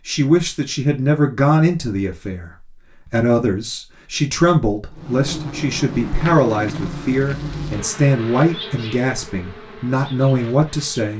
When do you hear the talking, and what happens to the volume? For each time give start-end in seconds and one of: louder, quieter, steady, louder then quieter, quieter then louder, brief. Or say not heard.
0.1-11.1 steady.